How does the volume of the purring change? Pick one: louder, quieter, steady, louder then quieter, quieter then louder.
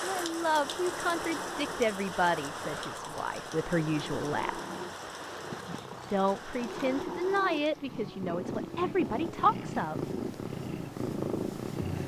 louder.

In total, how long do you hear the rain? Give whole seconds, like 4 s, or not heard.
8 s.